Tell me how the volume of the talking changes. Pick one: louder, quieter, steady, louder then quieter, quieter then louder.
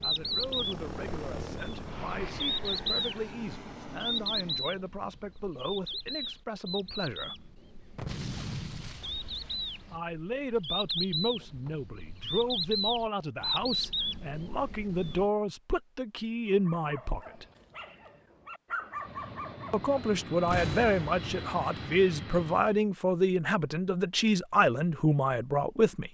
louder.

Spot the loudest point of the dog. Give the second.
19 s.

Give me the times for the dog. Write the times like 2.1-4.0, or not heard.
16.5-19.9.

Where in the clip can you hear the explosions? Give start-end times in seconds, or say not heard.
8.0-10.0, 20.4-21.2.